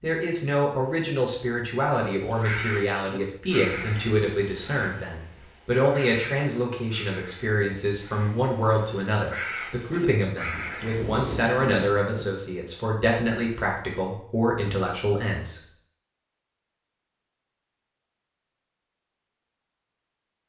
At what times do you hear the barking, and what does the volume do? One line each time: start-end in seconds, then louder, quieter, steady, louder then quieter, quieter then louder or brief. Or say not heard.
not heard.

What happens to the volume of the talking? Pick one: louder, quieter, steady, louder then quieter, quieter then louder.
steady.